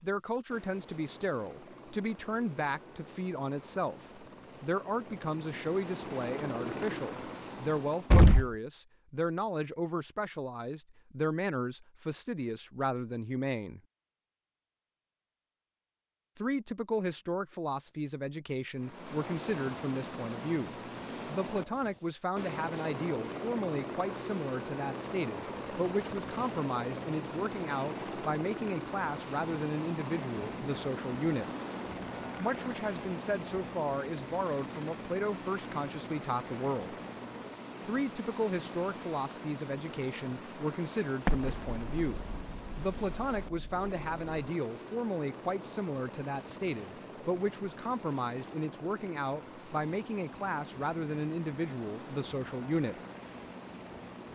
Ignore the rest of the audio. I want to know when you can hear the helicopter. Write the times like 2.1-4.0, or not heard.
0.0-8.3, 18.8-54.3.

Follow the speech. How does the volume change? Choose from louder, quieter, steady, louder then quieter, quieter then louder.
steady.